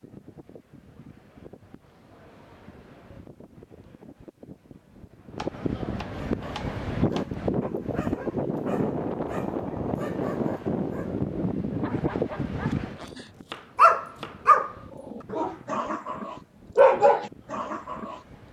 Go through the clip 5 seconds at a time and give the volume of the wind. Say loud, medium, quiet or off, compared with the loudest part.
quiet, loud, loud, quiet.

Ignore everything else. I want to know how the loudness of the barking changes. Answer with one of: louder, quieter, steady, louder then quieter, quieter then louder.
louder.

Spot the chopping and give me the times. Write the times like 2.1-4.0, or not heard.
5.3-7.3, 12.6-14.4.